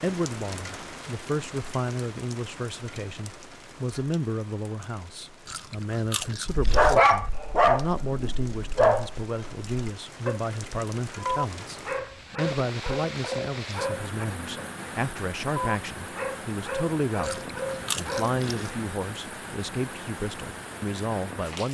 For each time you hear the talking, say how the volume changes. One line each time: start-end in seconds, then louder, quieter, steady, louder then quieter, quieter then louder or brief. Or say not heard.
0.0-21.6 steady.